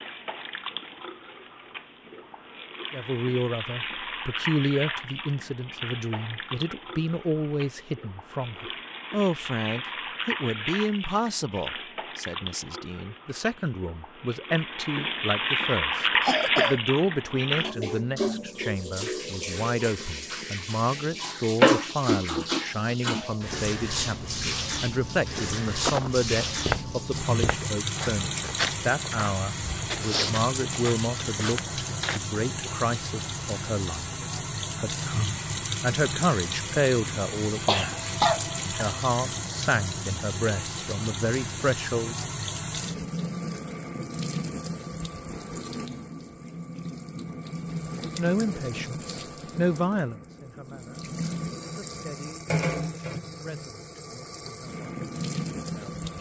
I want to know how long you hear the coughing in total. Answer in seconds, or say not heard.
2 s.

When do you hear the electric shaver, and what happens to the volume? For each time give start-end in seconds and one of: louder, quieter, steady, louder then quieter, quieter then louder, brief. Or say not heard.
not heard.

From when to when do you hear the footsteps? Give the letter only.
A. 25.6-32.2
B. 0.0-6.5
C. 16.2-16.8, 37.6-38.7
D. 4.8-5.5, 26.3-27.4
A.